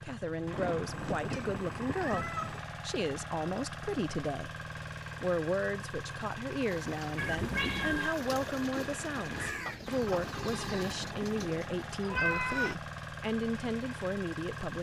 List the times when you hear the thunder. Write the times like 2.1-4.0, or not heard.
0.5-2.5.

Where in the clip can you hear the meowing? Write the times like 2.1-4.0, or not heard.
0.8-2.6, 7.2-8.2, 12.0-12.8.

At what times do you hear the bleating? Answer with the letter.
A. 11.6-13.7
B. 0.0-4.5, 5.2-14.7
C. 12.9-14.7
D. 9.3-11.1
D.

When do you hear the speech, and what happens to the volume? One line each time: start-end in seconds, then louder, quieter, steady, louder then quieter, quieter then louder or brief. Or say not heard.
0.0-4.5 steady
5.2-14.7 steady.